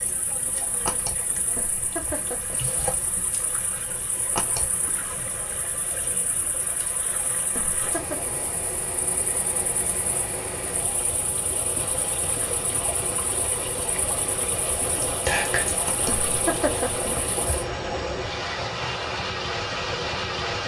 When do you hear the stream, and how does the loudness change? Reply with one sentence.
You can hear the stream from 0.0 to 20.6 s, getting louder.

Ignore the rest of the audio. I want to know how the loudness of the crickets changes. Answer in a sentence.
The volume of the crickets goes down, then up.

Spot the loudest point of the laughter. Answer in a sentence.
The loudest moment of the laughter is at 17 seconds.